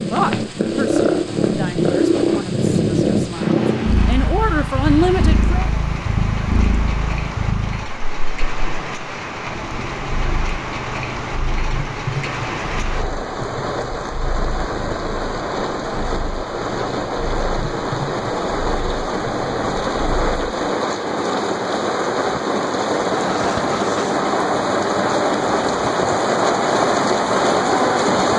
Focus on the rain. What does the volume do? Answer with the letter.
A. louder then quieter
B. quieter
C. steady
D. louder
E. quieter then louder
D.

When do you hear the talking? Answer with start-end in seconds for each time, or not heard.
0.1-5.7.